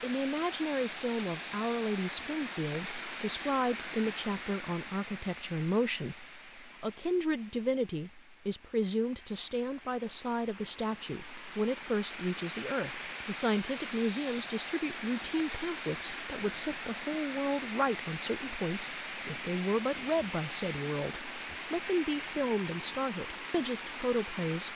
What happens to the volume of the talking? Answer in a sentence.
The loudness of the talking stays about the same.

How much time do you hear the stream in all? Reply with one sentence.
You can hear the stream for 25 seconds altogether.